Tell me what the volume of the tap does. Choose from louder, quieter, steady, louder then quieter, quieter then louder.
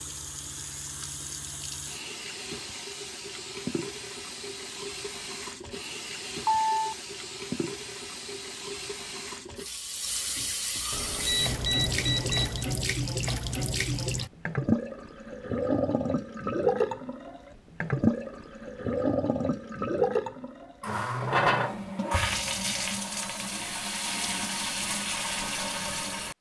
louder.